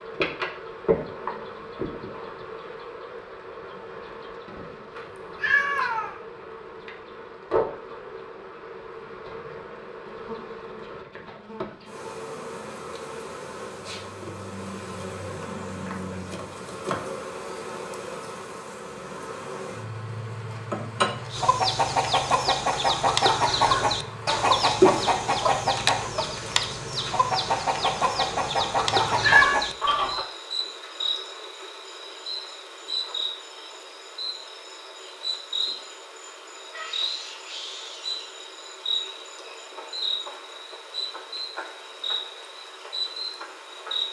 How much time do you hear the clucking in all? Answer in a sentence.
The clucking can be heard for 9 seconds in total.